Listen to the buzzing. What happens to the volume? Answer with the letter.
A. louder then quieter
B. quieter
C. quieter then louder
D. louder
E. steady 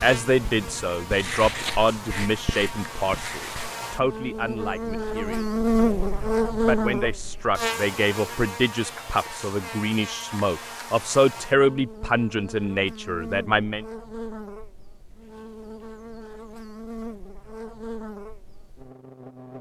A.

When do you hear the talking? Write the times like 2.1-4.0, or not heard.
0.0-13.8.